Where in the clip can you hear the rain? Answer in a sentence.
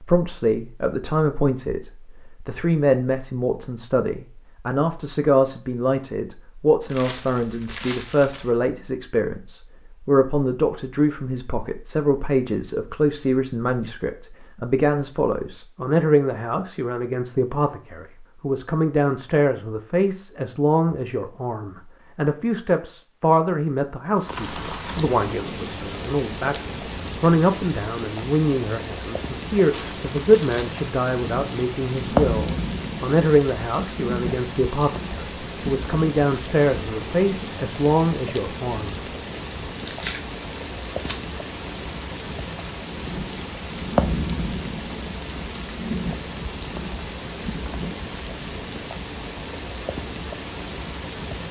You can hear the rain from 24.1 to 51.4 s.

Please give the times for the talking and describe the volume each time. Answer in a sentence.
You can hear the talking from 0.0 to 39.0 s, at a steady volume.